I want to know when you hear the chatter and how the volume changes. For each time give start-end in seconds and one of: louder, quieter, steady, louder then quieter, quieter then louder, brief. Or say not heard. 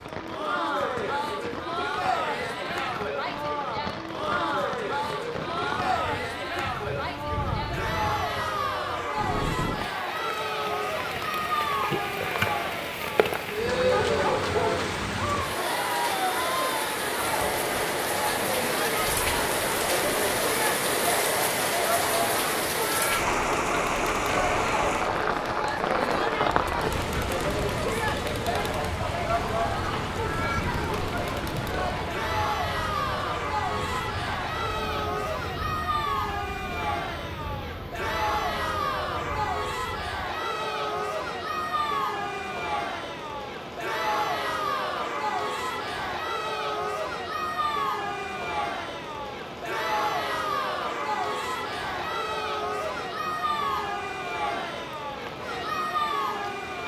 0.1-56.8 steady.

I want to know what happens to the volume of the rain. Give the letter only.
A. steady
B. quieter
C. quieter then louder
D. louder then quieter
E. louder
D.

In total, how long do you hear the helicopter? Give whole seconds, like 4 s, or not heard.
not heard.